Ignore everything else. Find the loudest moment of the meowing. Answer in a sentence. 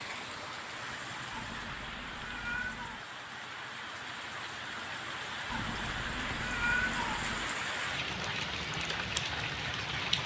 The volume of the meowing peaks at 7 seconds.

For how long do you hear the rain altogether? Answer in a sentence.
You can hear the rain for 10 seconds altogether.